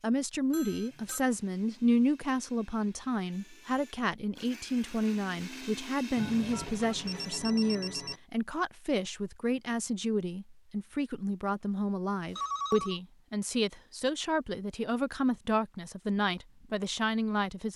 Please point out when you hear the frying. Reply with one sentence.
You can't hear the frying here.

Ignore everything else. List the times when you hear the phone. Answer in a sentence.
You can hear the phone from 0.5 to 1.2 s, from 6.2 to 8.2 s and from 12.3 to 13.0 s.